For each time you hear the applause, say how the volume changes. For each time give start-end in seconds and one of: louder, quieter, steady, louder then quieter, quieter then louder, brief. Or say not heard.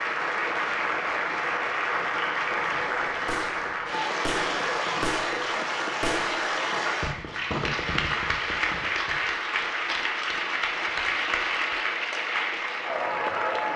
0.0-13.7 steady.